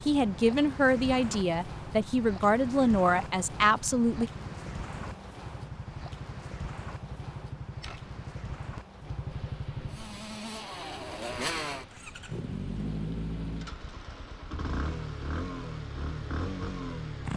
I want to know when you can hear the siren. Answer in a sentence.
You can't hear the siren here.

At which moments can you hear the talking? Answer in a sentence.
The talking can be heard from 0.1 to 4.3 s.